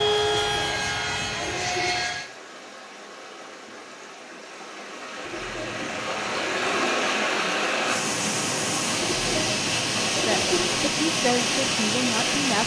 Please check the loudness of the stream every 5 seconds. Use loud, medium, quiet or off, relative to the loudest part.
quiet, loud, loud.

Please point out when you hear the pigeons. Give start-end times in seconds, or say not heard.
0.2-1.9, 5.2-6.8, 9.0-10.6.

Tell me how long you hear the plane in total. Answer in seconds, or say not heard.
2 s.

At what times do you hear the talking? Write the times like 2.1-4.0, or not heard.
10.2-12.6.